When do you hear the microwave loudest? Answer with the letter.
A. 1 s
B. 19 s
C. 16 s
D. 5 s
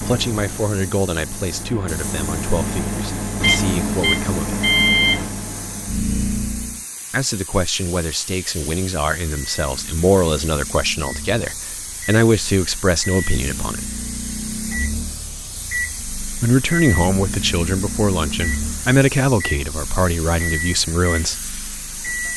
D.